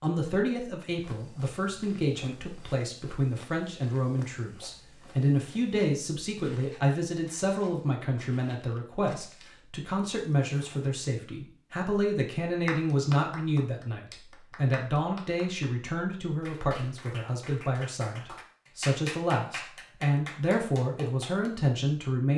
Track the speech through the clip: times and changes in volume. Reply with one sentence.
The speech can be heard from 0.0 to 22.3 s, at a steady volume.